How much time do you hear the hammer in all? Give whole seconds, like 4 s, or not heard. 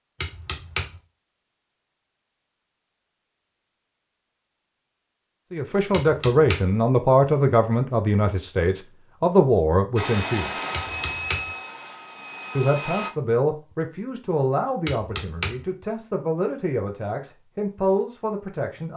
3 s.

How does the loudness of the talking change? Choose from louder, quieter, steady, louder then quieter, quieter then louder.
quieter.